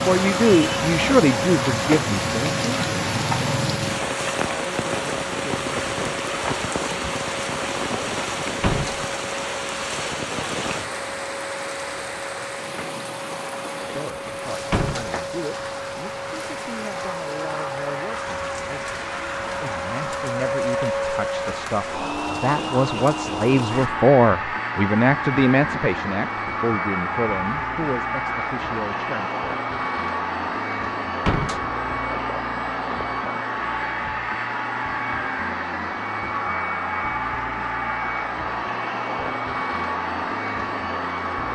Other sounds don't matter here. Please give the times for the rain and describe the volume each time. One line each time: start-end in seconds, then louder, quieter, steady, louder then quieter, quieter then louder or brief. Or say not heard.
0.0-23.9 quieter.